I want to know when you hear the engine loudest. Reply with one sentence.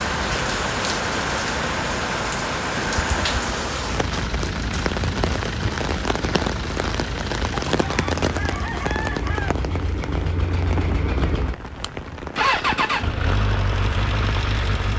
The volume of the engine peaks at 13 seconds.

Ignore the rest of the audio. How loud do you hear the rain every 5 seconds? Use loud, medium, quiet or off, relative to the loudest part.
loud, loud, medium.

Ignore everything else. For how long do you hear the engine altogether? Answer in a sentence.
You can hear the engine for 15 seconds altogether.